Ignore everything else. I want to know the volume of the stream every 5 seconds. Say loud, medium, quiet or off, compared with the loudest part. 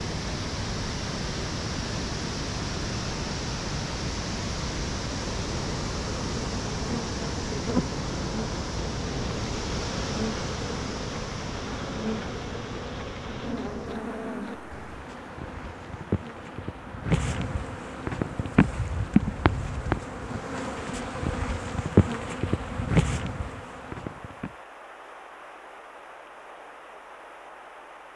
loud, loud, medium, quiet, quiet, quiet.